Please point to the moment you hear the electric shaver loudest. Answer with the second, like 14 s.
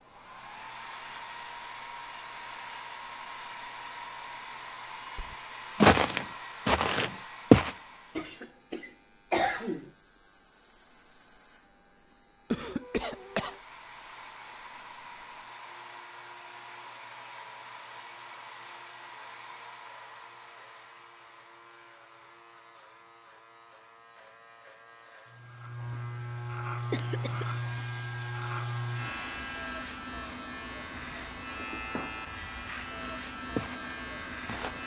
27 s.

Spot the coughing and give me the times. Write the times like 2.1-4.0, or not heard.
8.2-9.9, 12.5-13.6, 26.9-27.5.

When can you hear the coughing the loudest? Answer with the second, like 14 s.
9 s.